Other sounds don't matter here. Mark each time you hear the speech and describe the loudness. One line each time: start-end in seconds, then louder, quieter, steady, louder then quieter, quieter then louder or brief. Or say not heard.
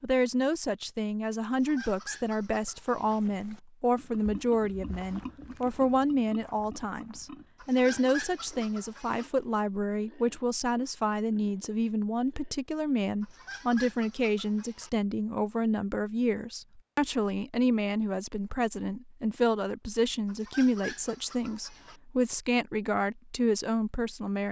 0.0-24.4 steady.